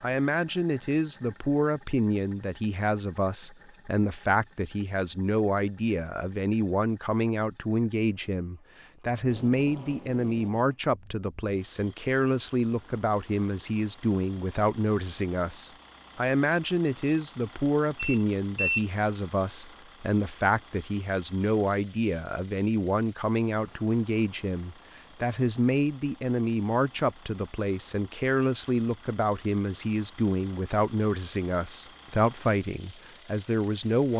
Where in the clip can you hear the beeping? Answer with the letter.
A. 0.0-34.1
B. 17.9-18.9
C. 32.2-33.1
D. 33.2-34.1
B.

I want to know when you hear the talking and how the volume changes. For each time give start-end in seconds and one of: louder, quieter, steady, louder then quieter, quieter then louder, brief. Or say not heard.
0.0-34.1 steady.